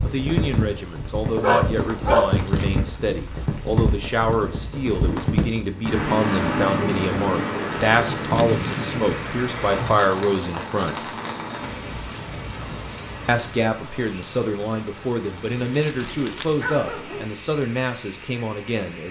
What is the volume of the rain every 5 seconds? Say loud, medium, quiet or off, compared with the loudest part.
loud, loud, medium, quiet.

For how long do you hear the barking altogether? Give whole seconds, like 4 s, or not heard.
3 s.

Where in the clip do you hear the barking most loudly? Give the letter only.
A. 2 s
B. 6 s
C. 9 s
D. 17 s
A.